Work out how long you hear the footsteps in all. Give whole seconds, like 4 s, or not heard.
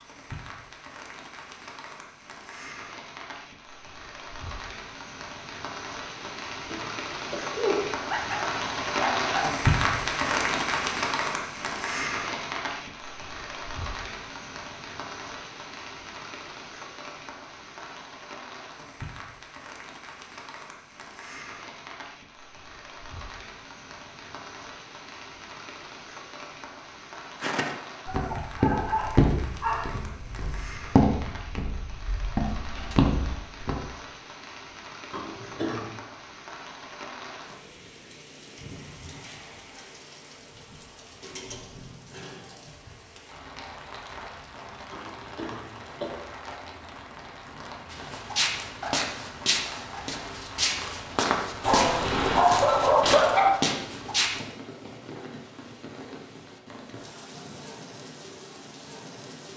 13 s.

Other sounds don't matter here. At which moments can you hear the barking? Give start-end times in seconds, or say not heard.
8.1-9.5, 28.1-29.9, 51.6-53.5.